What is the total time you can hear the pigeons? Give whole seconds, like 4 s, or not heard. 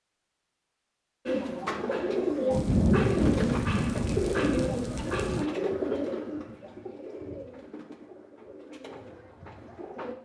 9 s.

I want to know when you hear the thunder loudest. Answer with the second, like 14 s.
3 s.